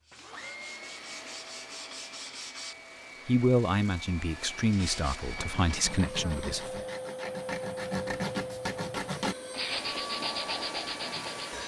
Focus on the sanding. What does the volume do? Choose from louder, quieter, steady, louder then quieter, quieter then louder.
louder.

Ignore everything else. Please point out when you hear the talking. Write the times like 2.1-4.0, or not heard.
3.2-6.8.